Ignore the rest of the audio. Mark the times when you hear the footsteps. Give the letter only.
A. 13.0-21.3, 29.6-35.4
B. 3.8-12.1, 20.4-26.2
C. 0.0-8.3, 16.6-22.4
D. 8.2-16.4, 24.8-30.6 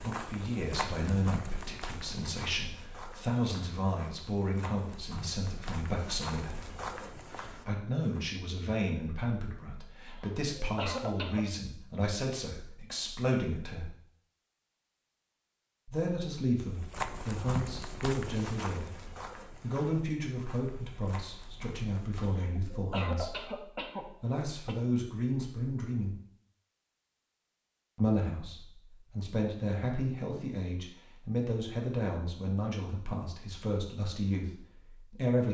C.